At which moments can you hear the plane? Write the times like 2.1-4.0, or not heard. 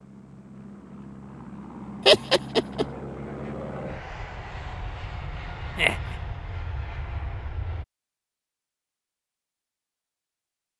0.0-7.8.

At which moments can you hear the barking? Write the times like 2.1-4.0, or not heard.
not heard.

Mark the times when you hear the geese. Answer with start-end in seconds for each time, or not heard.
not heard.